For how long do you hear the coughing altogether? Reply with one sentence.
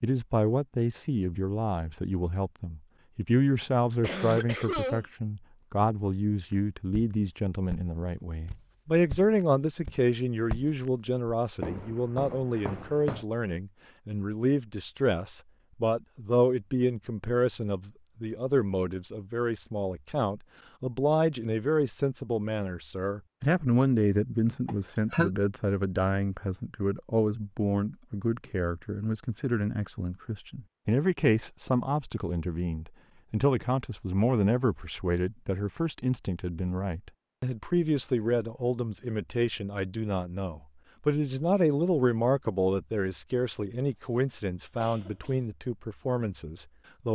You can hear the coughing for 3 seconds altogether.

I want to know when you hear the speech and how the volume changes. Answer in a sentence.
You can hear the speech from 0.0 to 47.1 s, at a steady volume.